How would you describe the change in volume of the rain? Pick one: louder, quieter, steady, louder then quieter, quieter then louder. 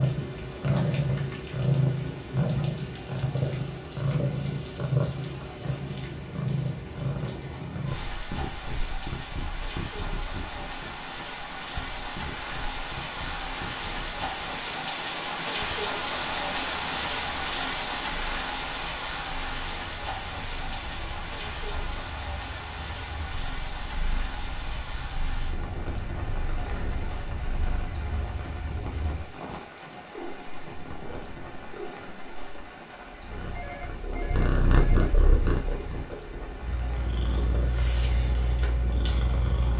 louder then quieter.